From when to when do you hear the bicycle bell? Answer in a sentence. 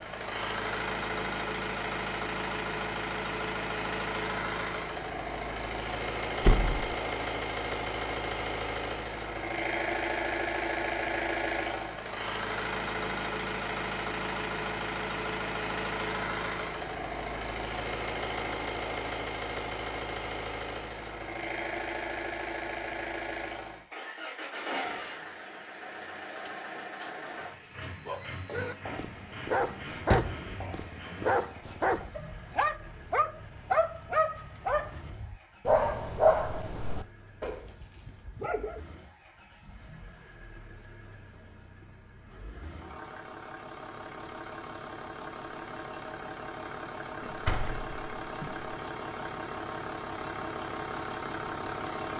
You can't hear the bicycle bell here.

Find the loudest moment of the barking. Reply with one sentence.
The loudest moment of the barking is at 36 seconds.